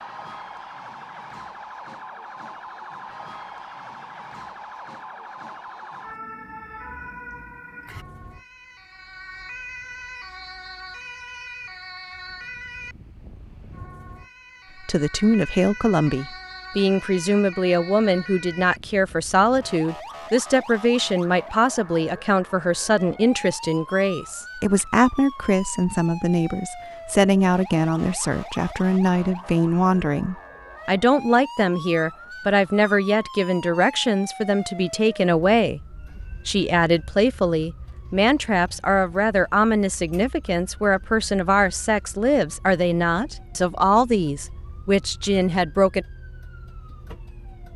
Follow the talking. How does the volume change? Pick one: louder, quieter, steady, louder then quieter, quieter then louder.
steady.